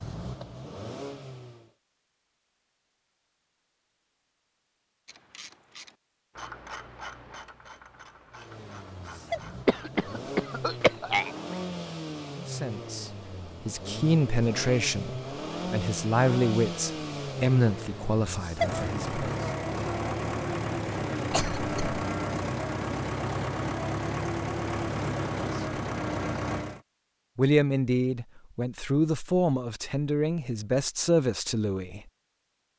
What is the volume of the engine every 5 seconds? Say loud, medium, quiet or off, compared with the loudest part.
medium, medium, medium, loud, loud, loud, off.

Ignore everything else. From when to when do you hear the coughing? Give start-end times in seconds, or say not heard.
9.7-11.3, 21.3-22.0.